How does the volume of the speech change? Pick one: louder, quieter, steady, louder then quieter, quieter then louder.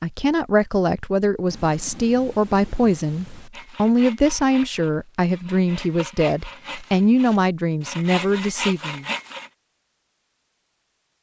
steady.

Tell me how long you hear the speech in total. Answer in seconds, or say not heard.
9 s.